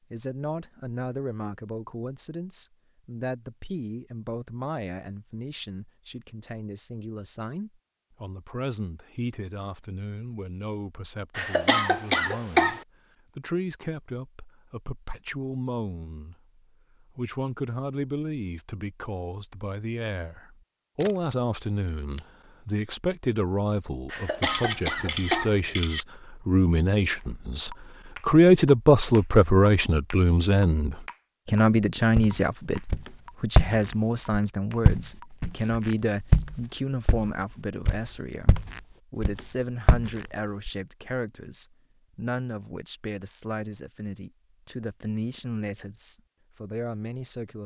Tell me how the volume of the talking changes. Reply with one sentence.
The loudness of the talking goes up, then down.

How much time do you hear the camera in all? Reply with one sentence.
The camera can be heard for 3 seconds in total.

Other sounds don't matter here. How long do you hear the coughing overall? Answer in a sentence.
The coughing can be heard for 3 seconds in total.